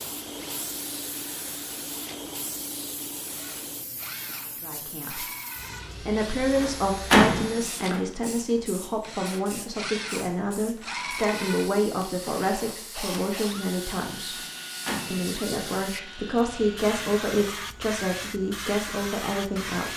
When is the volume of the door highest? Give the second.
7 s.